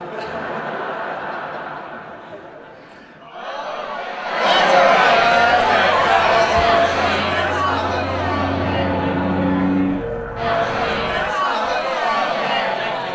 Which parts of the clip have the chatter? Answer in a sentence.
You can hear the chatter from 0.0 to 13.1 s.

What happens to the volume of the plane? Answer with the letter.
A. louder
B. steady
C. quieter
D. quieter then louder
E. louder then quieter
E.